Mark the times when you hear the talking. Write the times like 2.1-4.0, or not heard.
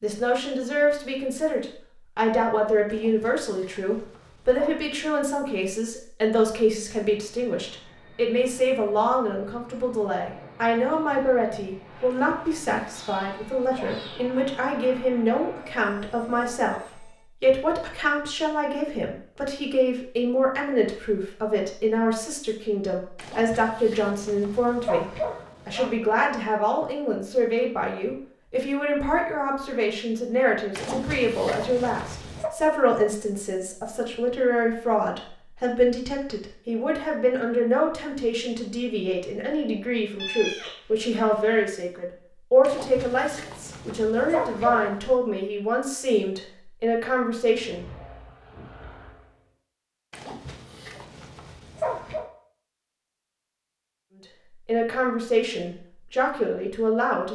0.0-47.9, 54.6-57.2.